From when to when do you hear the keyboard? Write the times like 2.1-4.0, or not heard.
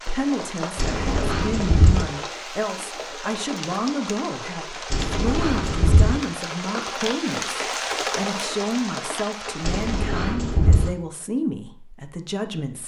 0.8-2.0, 4.9-6.2, 9.6-10.9.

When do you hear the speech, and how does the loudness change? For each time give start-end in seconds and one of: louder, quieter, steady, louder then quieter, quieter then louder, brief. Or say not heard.
0.1-12.8 steady.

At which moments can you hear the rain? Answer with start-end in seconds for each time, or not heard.
0.0-10.2.